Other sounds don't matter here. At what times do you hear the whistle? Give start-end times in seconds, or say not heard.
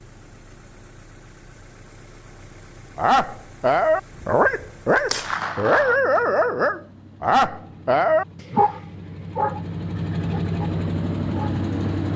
not heard.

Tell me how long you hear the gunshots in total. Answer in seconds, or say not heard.
2 s.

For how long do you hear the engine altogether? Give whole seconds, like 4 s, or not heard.
12 s.